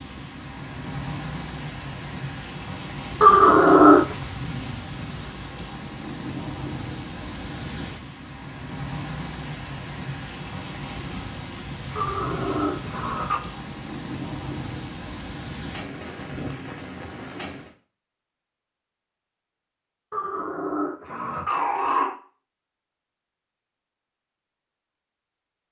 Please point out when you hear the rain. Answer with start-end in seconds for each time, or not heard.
0.0-17.8.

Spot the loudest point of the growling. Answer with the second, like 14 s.
4 s.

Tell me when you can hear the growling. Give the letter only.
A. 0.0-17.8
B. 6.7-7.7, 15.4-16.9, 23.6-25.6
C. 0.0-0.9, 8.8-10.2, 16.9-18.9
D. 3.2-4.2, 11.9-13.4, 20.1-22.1
D.